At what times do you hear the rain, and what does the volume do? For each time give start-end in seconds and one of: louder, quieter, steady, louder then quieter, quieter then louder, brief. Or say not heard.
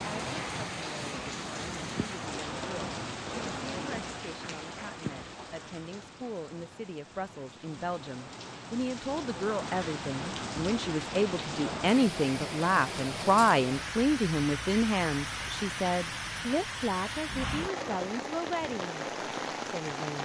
0.0-20.2 quieter then louder.